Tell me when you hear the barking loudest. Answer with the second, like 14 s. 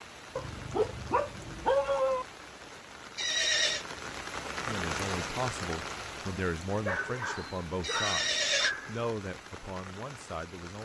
2 s.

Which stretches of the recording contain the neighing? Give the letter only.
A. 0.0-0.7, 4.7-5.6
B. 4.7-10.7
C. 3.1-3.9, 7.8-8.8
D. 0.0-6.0
C.